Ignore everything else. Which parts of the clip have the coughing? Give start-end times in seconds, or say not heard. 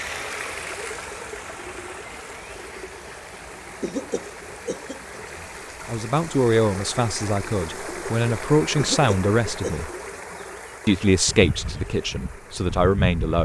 3.8-5.2, 8.8-9.8.